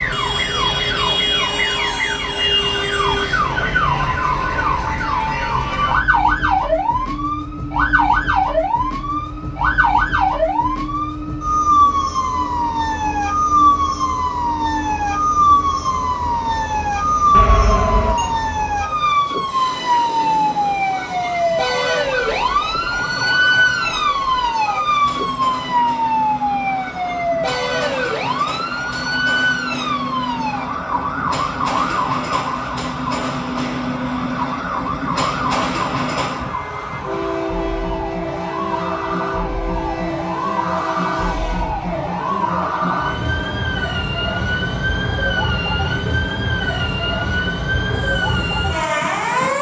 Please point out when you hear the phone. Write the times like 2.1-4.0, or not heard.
17.3-18.3.